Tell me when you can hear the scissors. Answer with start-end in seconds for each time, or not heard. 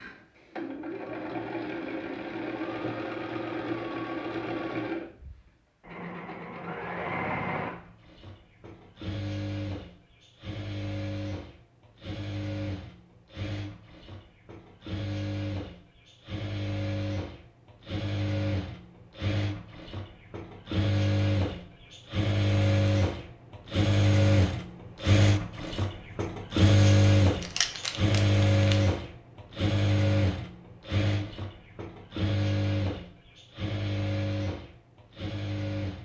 27.4-28.8.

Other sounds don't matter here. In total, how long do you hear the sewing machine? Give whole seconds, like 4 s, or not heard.
36 s.